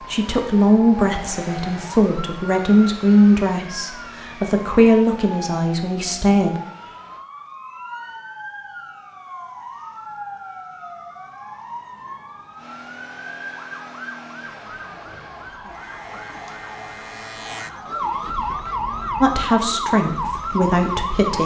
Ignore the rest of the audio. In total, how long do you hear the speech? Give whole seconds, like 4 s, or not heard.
9 s.